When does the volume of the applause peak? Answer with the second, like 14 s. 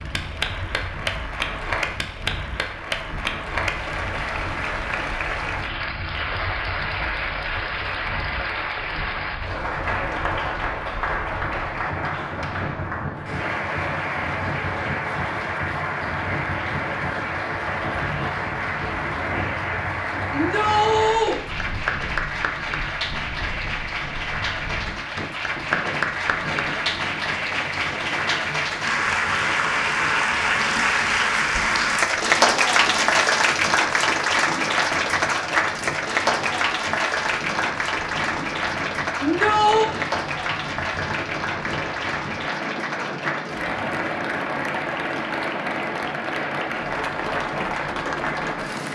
33 s.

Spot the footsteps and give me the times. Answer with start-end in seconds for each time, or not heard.
not heard.